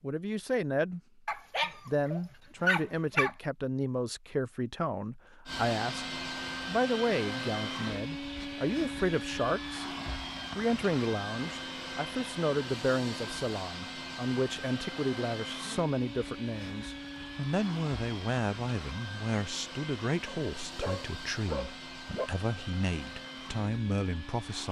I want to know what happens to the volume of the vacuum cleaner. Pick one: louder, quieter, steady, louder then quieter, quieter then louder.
quieter.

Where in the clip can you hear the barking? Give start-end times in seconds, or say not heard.
1.2-3.4, 20.2-22.3.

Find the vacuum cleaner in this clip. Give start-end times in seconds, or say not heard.
5.5-24.6.